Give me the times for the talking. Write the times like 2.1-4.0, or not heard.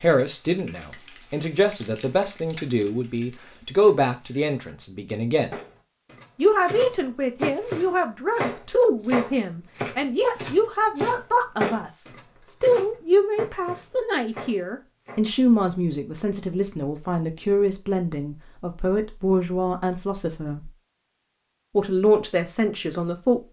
0.0-5.5, 6.3-20.7, 21.8-23.4.